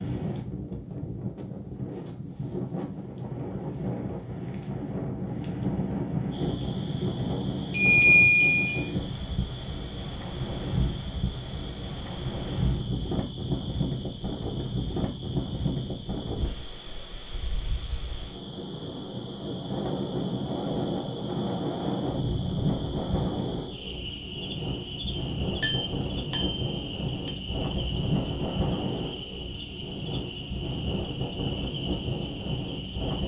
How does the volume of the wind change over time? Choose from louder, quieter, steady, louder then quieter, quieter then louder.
steady.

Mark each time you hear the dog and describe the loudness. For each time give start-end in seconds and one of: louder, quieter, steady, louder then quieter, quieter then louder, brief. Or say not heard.
not heard.